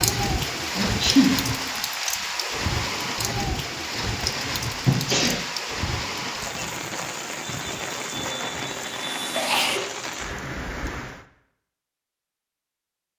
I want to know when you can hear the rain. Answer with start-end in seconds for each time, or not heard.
0.0-11.2.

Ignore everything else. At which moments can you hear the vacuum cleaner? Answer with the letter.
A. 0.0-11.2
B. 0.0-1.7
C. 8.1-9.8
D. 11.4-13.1
C.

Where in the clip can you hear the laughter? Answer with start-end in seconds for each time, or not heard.
not heard.